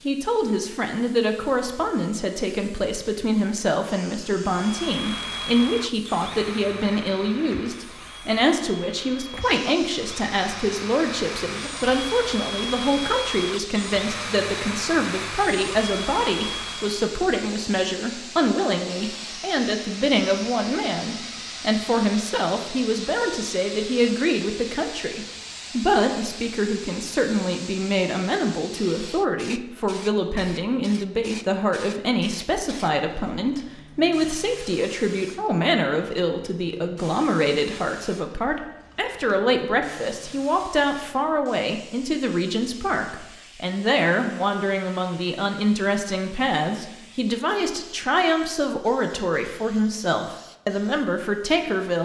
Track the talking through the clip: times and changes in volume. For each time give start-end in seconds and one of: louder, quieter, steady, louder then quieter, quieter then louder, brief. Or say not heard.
0.1-52.0 steady.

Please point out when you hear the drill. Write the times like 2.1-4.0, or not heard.
4.5-17.1.